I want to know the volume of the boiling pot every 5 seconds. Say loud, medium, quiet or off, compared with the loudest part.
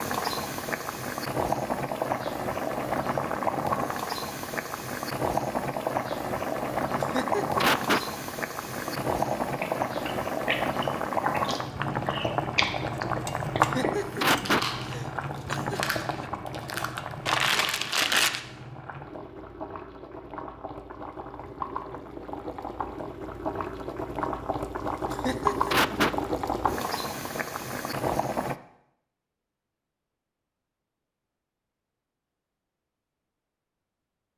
loud, loud, loud, medium, medium, loud, off.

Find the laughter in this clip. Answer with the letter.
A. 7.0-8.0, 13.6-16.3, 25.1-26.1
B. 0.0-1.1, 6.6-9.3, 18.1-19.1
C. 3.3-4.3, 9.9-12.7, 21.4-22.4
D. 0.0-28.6
A.